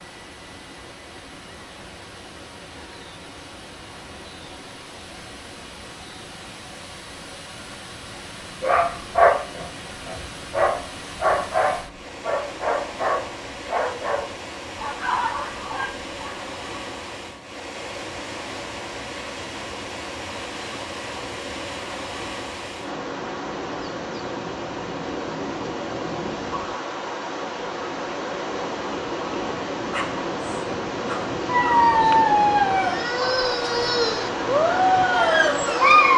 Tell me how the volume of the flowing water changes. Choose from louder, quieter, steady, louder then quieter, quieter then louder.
louder.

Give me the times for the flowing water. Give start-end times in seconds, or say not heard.
0.0-36.1.